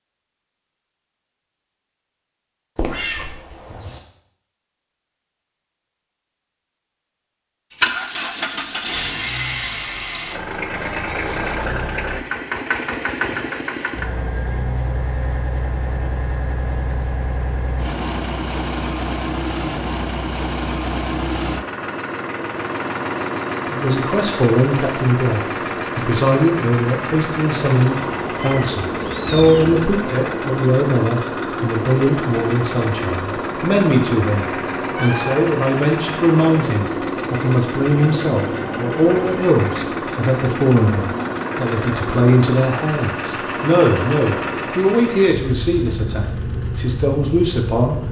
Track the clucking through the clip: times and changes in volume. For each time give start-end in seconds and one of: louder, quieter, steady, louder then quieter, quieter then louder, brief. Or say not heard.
not heard.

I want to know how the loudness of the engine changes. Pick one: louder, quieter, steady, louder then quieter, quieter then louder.
steady.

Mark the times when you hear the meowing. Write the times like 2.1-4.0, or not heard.
2.8-3.9, 28.4-29.9, 34.8-35.4.